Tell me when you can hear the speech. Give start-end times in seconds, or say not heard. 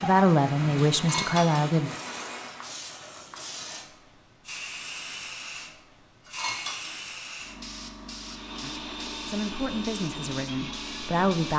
0.0-1.9, 8.6-11.5.